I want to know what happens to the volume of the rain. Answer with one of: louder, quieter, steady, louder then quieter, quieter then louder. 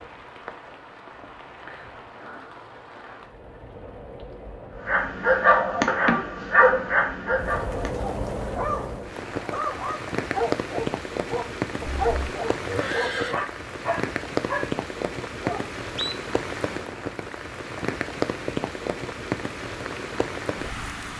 louder.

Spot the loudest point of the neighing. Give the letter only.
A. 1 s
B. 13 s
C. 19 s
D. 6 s
B.